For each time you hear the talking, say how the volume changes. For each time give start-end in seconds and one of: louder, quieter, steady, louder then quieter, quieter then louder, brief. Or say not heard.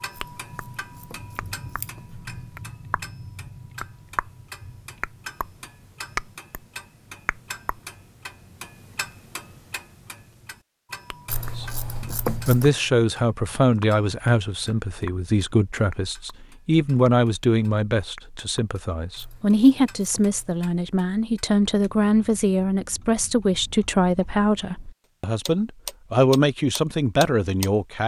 11.6-28.0 steady.